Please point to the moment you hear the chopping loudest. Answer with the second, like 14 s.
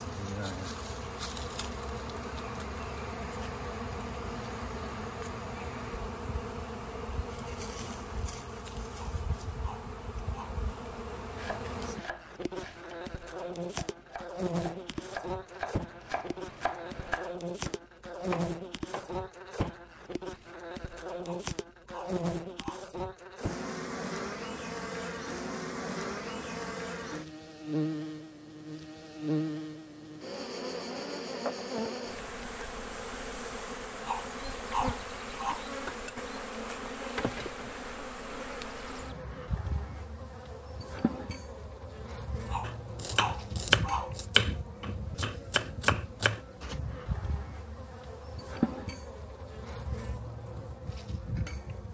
44 s.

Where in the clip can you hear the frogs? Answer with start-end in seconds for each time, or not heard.
not heard.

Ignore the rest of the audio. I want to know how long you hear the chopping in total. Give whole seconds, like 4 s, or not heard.
13 s.